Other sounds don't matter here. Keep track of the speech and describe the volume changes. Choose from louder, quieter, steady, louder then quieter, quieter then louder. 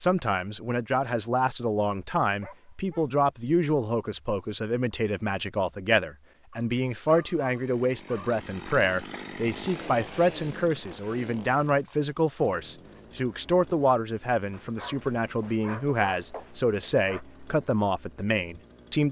steady.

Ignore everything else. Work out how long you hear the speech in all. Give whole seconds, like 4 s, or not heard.
19 s.